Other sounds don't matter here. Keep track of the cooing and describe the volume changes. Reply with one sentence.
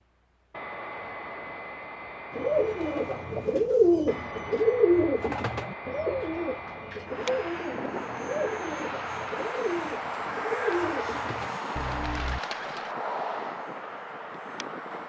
The loudness of the cooing goes down.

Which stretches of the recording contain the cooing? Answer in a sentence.
The cooing can be heard from 2.3 to 12.9 s.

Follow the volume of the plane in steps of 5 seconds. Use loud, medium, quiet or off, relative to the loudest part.
medium, loud, loud.